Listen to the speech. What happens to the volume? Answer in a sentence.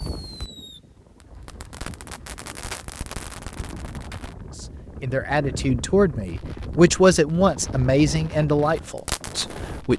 The loudness of the speech goes up, then down.